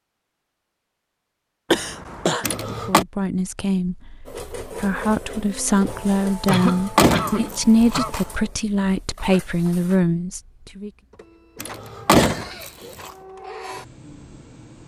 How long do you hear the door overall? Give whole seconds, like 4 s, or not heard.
4 s.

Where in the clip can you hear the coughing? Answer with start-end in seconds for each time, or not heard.
1.7-2.5, 6.5-8.1, 12.2-12.9.